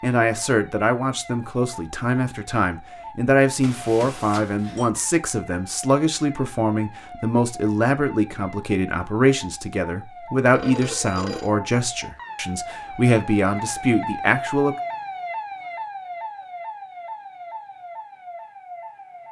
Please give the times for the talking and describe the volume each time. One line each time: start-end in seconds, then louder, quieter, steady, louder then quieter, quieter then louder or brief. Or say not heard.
0.0-14.8 steady.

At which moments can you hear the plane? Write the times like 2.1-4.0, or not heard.
not heard.